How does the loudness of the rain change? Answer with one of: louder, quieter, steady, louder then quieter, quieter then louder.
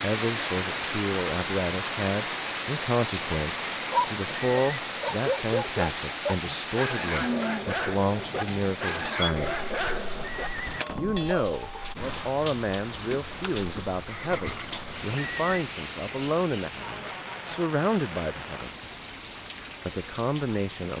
quieter.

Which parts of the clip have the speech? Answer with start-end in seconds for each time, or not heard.
0.0-9.7, 10.9-18.7, 19.9-20.9.